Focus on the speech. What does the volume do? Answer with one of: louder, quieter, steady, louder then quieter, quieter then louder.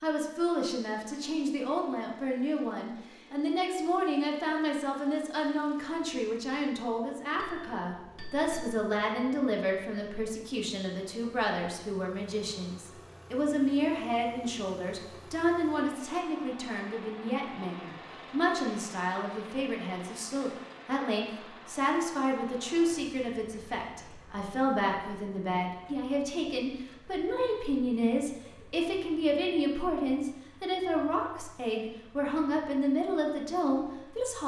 steady.